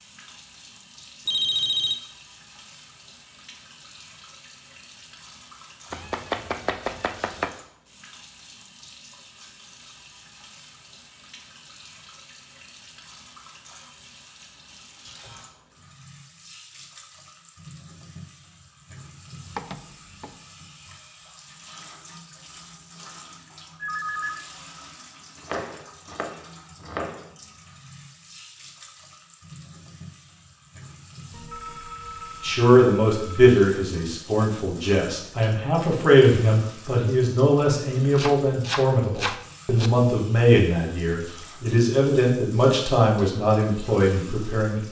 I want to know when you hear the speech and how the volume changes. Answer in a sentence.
The speech can be heard from 32.4 to 44.8 s, at a steady volume.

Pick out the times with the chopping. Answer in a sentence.
You can hear the chopping from 5.9 to 7.5 s, from 19.5 to 20.4 s, from 25.4 to 27.4 s and from 38.1 to 39.9 s.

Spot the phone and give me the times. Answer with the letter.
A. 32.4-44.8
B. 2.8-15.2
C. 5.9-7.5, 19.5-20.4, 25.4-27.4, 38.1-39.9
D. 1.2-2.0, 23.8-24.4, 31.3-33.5
D.